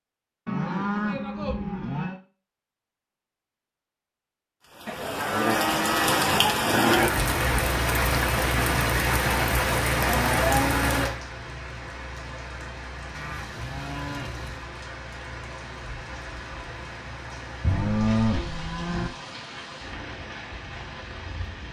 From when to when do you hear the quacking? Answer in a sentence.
The quacking can't be heard in this clip.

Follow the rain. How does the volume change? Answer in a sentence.
The volume of the rain goes down.